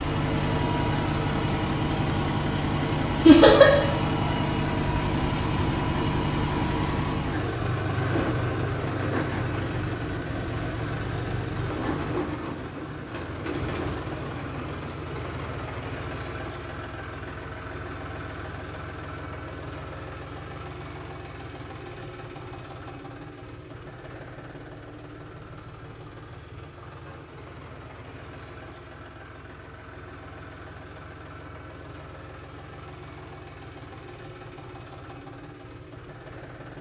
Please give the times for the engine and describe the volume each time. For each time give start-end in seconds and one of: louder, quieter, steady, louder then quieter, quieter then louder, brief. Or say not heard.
0.0-36.7 quieter.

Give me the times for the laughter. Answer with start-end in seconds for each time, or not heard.
3.2-3.7.